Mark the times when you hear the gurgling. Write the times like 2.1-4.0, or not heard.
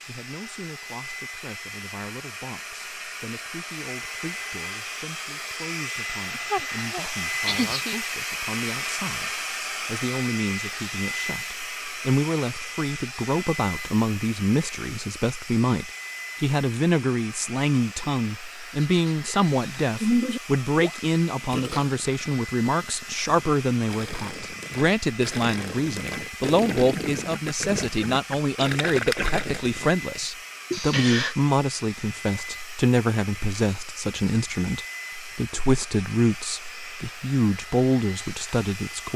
20.8-30.8.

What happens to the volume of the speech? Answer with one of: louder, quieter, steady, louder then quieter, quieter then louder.
louder.